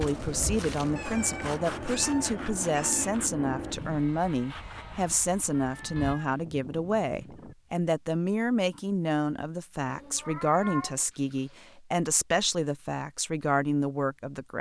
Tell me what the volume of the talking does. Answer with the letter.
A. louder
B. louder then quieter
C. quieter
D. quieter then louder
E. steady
E.